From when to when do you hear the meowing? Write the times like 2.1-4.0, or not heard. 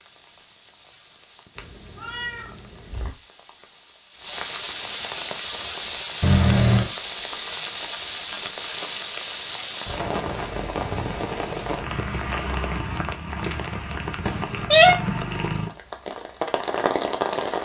1.6-3.1, 6.2-6.9, 14.2-14.9.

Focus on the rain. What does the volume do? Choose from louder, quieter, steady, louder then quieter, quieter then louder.
louder.